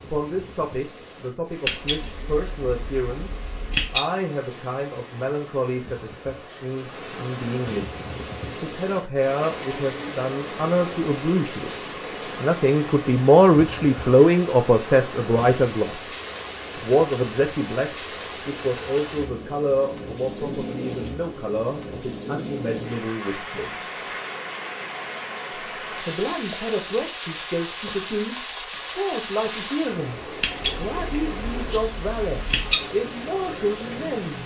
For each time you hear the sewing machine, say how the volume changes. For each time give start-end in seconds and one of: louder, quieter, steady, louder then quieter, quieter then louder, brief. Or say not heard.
not heard.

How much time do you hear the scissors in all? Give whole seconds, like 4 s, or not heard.
5 s.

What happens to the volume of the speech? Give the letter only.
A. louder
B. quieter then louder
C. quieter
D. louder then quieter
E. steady
D.